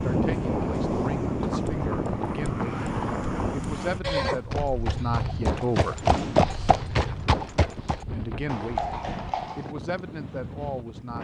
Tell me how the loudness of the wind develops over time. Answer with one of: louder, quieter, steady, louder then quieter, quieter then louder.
quieter.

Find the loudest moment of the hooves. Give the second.
6 s.